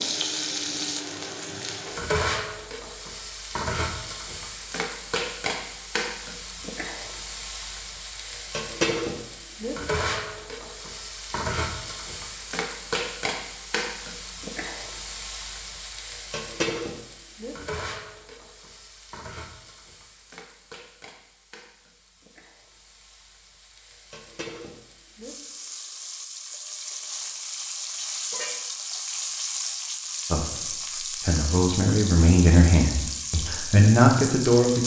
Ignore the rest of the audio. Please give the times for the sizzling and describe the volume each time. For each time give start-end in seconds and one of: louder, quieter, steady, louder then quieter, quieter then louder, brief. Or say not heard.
0.0-34.8 quieter then louder.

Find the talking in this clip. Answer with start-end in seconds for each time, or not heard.
30.3-34.8.